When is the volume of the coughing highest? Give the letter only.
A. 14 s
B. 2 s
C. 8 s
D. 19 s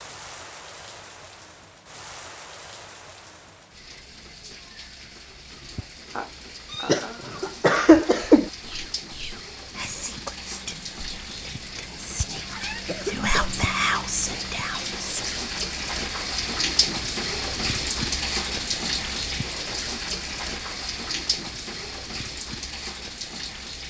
C.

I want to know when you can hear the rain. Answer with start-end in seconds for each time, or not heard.
0.0-23.8.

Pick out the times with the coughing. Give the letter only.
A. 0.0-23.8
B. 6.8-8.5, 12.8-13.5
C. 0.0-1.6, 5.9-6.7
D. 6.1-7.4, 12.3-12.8
B.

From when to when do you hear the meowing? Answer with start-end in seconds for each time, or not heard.
6.1-7.4, 12.3-12.8.